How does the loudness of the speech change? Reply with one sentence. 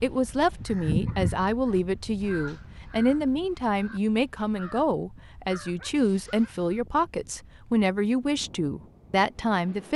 The volume of the speech stays about the same.